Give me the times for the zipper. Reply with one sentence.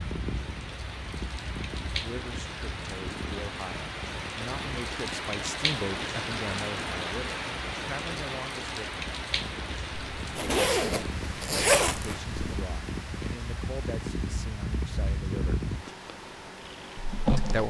You can hear the zipper from 9.9 to 12.4 s.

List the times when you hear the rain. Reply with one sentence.
You can hear the rain from 0.0 to 17.6 s.